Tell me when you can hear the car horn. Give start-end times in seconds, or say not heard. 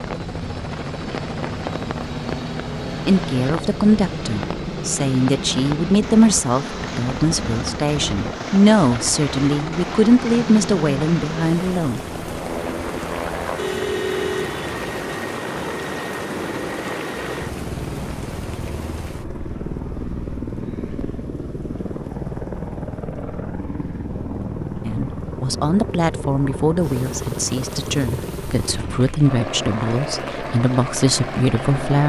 13.6-14.7.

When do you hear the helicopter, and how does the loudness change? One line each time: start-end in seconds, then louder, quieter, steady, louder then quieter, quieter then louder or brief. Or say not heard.
0.0-32.0 steady.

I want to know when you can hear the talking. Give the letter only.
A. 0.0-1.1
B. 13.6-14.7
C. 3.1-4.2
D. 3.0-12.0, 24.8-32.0
D.